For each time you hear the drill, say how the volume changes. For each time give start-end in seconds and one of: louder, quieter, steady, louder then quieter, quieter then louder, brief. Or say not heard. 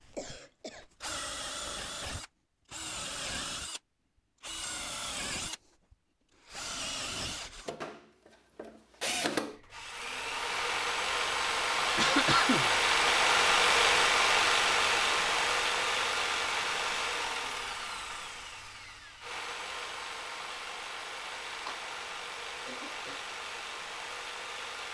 0.0-24.8 louder then quieter.